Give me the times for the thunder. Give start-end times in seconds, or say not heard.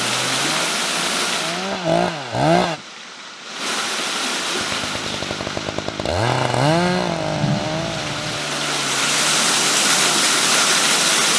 6.6-8.4.